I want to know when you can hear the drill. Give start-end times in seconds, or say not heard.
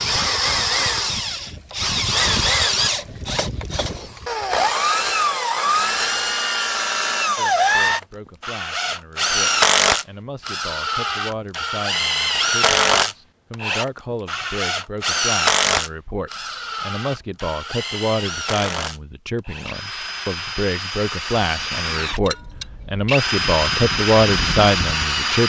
0.0-25.4.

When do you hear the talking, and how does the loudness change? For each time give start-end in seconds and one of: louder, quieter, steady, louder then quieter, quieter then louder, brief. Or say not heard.
7.3-25.4 louder.